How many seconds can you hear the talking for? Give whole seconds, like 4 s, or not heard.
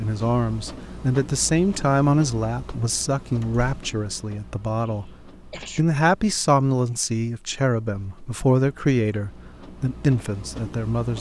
11 s.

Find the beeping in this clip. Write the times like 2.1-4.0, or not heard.
not heard.